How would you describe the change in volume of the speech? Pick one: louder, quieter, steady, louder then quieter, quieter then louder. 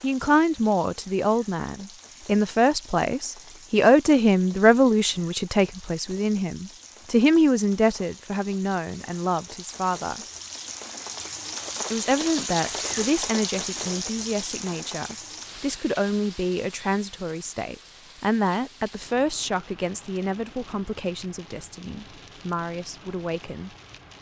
quieter.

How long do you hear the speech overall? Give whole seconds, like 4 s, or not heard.
22 s.